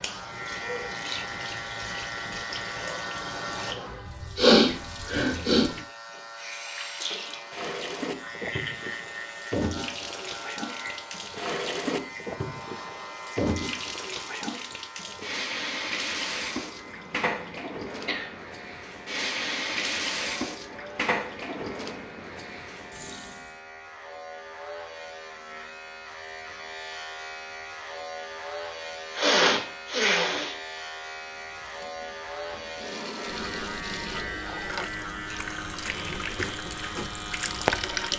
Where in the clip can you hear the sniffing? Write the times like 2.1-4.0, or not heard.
4.3-5.7, 16.9-18.3, 29.1-30.6.